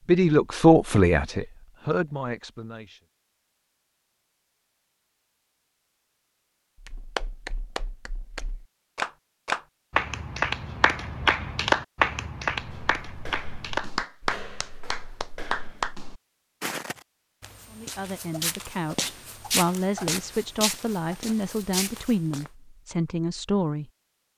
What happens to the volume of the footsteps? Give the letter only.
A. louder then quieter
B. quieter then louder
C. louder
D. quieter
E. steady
C.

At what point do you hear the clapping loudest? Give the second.
12 s.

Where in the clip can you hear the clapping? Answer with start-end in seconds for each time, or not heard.
6.8-15.9.